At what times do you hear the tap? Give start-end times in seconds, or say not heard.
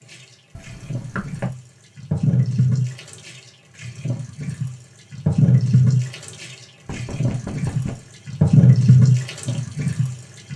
0.0-10.5.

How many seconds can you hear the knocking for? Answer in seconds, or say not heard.
2 s.